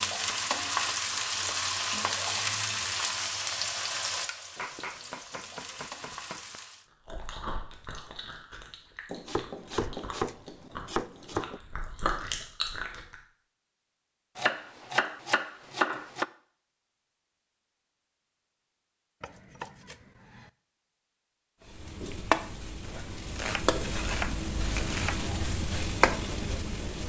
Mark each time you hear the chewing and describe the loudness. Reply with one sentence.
You can hear the chewing from 7.0 to 13.0 s, getting quieter then louder.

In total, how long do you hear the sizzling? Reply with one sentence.
The sizzling can be heard for 12 seconds in total.